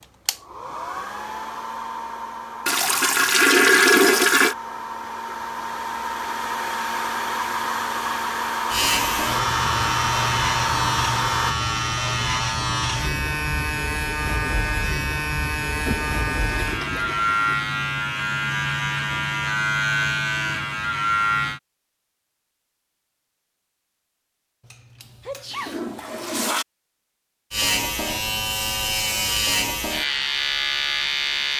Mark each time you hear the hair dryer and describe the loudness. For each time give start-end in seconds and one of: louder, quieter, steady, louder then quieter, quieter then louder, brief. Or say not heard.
0.0-11.6 louder.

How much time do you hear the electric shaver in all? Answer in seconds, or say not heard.
17 s.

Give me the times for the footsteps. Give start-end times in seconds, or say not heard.
not heard.